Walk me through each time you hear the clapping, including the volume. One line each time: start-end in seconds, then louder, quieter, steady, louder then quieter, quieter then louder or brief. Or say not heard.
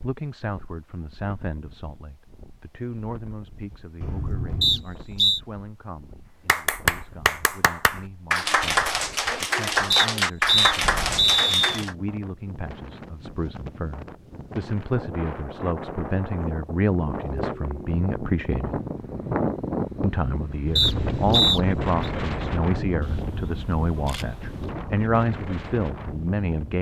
6.5-11.9 steady.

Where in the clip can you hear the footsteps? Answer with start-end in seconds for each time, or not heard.
not heard.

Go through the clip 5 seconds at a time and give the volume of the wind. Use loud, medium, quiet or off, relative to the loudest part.
quiet, quiet, medium, loud, loud, medium.